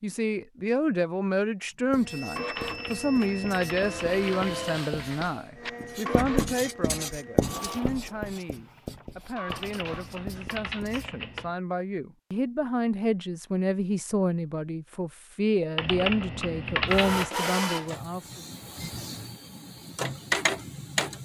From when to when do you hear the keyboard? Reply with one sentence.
The keyboard can be heard from 2.5 to 4.8 s, from 9.5 to 11.6 s and from 15.8 to 17.3 s.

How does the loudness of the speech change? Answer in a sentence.
The volume of the speech goes down, then up.